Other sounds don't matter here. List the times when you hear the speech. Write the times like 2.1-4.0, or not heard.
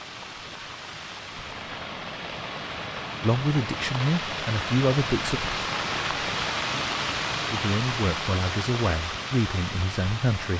3.2-5.4, 7.5-10.5.